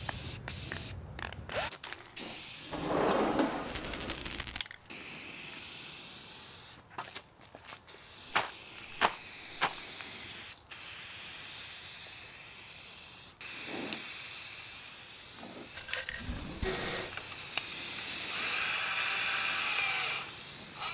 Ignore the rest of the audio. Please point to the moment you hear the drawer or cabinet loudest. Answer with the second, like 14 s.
3 s.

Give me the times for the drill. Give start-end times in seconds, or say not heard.
0.0-1.7, 16.6-20.9.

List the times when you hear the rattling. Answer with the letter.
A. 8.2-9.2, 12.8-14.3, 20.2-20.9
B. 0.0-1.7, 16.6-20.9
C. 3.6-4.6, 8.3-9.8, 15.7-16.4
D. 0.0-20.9
C.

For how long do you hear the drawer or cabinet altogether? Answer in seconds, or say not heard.
2 s.